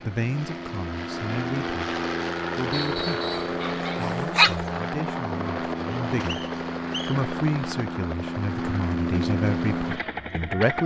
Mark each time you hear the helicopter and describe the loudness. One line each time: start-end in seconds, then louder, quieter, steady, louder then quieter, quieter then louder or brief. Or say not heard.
0.0-10.8 steady.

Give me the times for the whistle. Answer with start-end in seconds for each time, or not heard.
2.7-3.5, 5.9-7.2.